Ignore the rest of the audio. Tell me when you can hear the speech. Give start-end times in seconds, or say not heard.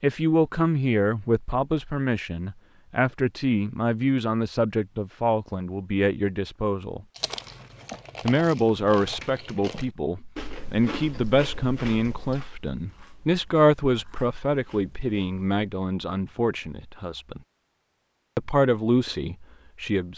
0.0-7.0, 8.2-17.4, 18.4-20.1.